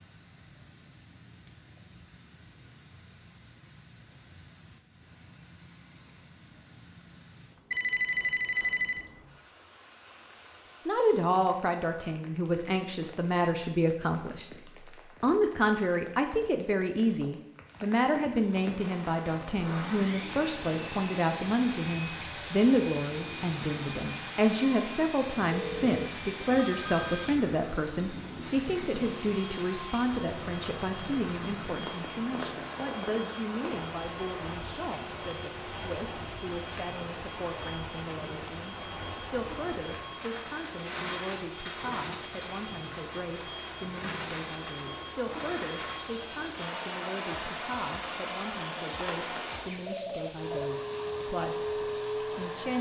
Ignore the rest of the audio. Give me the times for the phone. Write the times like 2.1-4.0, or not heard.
7.7-9.1, 25.5-27.4, 49.0-50.7.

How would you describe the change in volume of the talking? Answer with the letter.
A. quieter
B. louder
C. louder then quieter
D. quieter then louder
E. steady
A.